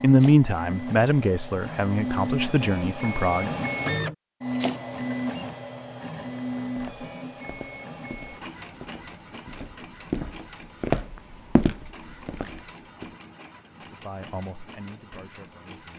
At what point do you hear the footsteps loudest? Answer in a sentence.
The volume of the footsteps peaks at 11 seconds.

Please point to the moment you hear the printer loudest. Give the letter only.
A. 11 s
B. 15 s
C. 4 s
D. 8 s
C.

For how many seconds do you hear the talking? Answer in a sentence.
The talking can be heard for 6 seconds in total.